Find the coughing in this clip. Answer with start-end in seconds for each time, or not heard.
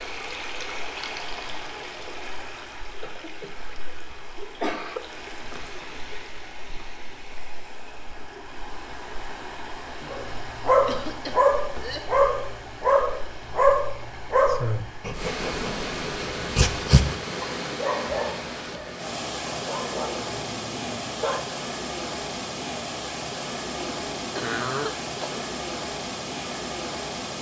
3.0-3.5, 4.3-5.0, 10.0-12.0, 24.0-25.4.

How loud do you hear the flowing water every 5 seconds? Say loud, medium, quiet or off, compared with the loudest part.
medium, medium, medium, loud, loud, loud.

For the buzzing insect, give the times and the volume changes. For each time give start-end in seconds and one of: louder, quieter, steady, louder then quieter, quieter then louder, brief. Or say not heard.
not heard.